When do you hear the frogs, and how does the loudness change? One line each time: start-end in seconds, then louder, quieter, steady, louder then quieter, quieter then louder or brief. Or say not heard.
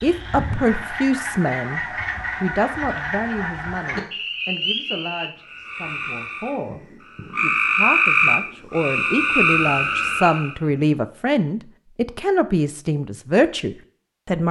0.0-10.6 louder.